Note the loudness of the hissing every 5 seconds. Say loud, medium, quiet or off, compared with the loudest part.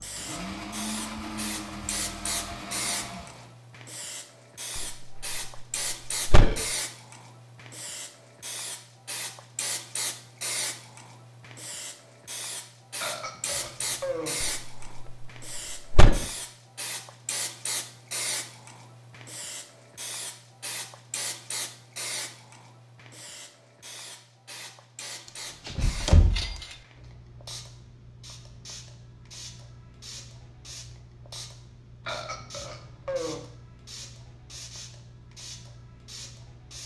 loud, loud, loud, loud, loud, medium, medium, medium.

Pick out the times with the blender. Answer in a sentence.
You can hear the blender from 0.0 to 3.5 s.